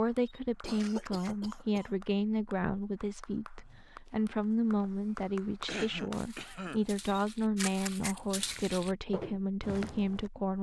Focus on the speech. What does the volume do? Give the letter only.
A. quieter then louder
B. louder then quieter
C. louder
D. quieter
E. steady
E.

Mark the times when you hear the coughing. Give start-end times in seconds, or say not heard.
0.6-1.9, 5.7-6.8.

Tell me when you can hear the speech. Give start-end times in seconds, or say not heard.
0.0-10.5.